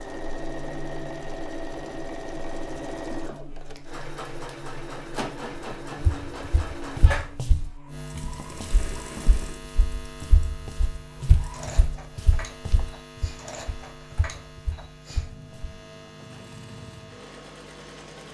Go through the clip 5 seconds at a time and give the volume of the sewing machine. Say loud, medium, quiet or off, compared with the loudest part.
loud, loud, medium, medium.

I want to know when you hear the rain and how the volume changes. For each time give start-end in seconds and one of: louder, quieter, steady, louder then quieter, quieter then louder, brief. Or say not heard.
not heard.